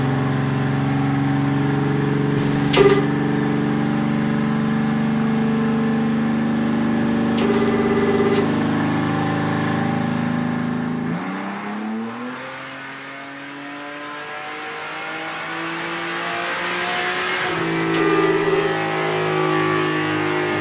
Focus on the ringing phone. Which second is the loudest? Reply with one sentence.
The volume of the ringing phone peaks at 3 seconds.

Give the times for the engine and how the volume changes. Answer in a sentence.
You can hear the engine from 0.0 to 20.5 s, getting quieter then louder.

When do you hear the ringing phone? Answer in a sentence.
You can hear the ringing phone from 2.4 to 3.0 s, from 7.2 to 8.6 s and from 17.8 to 18.8 s.